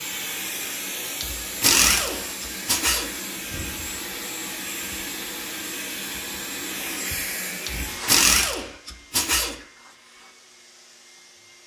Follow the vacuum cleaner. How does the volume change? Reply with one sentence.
The volume of the vacuum cleaner goes down.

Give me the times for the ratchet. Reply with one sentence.
You can hear the ratchet from 1.2 to 3.1 s and from 7.7 to 9.6 s.